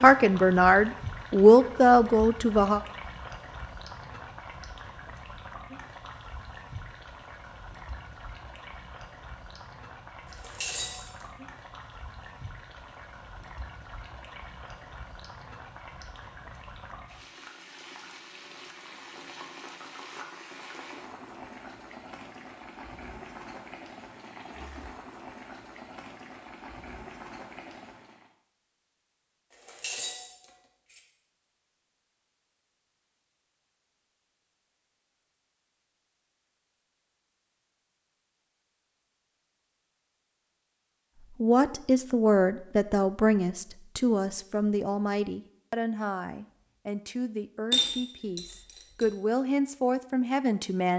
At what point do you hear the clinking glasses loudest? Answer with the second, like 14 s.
48 s.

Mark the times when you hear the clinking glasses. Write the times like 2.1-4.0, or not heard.
10.4-11.2, 29.6-31.0, 47.7-49.0.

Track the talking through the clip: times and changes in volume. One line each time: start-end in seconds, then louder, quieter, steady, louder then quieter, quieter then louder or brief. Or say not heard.
0.0-2.8 brief
41.4-50.9 quieter then louder.